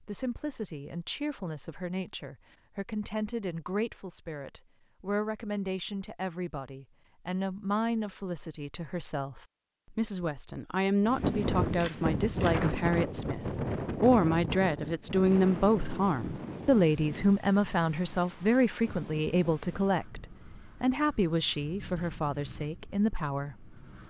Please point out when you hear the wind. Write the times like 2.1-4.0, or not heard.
11.1-24.0.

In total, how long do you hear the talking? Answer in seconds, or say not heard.
24 s.